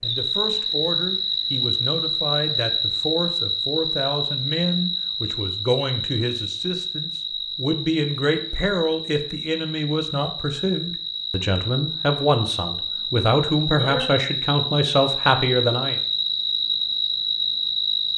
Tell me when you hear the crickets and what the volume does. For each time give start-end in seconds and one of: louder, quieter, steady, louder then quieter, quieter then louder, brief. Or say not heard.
0.0-18.1 quieter then louder.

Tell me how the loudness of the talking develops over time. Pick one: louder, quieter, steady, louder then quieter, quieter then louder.
louder.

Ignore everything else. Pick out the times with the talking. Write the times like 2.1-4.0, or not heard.
0.0-16.0.